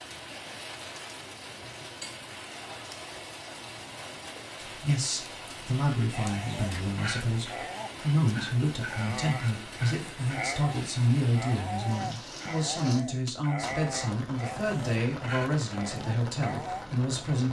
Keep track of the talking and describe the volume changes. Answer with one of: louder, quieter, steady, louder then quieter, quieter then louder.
steady.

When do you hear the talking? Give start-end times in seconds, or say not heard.
4.7-17.4.